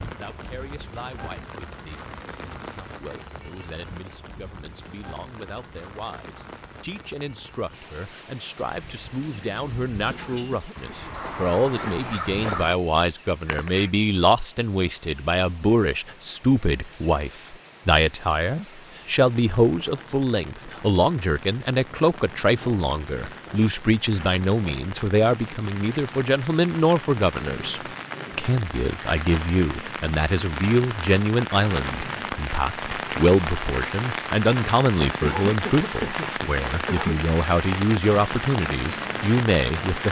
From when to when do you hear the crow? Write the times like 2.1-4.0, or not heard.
8.8-13.9.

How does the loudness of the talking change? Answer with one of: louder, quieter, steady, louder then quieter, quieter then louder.
louder.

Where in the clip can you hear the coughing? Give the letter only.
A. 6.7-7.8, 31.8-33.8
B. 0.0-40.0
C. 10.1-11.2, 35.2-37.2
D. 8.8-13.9
C.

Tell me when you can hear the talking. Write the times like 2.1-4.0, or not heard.
0.0-40.0.